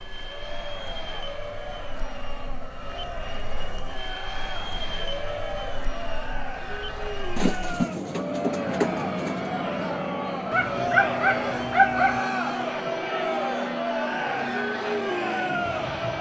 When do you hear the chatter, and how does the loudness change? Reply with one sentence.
You can hear the chatter from 0.1 to 16.1 s, getting louder.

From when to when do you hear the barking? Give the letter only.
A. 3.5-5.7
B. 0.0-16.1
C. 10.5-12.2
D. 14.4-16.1
C.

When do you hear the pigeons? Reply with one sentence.
You can hear the pigeons from 7.3 to 9.5 s.